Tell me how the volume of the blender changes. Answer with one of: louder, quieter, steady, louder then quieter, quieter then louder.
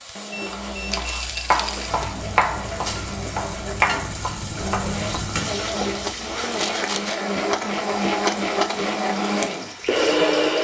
louder.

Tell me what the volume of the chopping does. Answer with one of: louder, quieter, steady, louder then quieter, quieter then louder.
quieter.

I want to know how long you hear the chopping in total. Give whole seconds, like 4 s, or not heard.
6 s.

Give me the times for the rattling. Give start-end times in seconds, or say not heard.
0.9-2.0, 6.5-7.2.